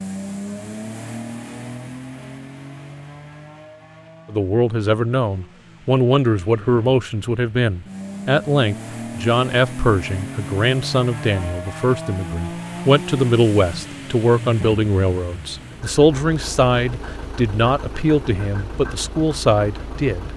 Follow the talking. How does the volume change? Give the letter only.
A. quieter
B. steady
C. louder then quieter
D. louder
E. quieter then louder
B.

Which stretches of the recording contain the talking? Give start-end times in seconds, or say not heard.
4.2-20.3.